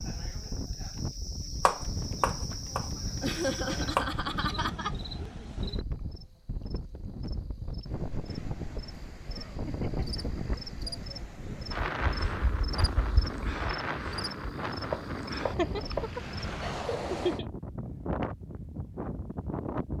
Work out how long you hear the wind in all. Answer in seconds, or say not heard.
20 s.